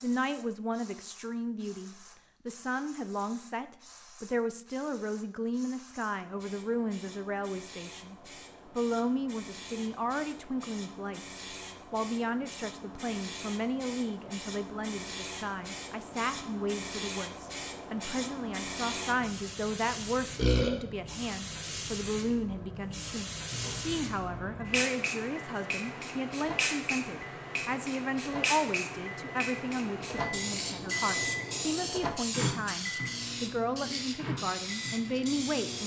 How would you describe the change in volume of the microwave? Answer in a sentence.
The loudness of the microwave goes up, then down.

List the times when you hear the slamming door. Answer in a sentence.
You can't hear the slamming door here.